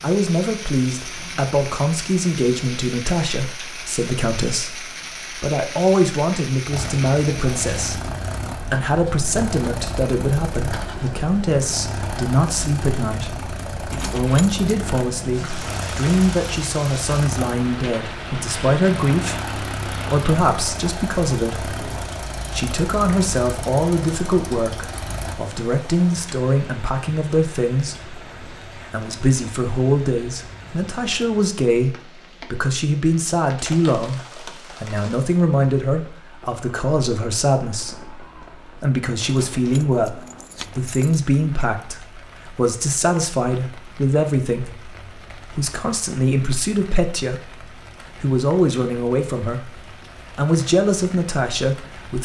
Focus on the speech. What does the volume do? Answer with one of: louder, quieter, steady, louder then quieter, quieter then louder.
steady.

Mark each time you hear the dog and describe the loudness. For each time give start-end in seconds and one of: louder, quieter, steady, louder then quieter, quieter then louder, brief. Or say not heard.
not heard.